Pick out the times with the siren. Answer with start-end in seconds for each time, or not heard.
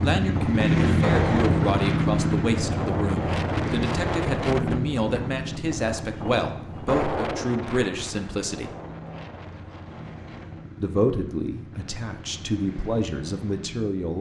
not heard.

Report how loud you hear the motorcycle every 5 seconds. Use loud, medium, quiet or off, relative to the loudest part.
loud, quiet, quiet.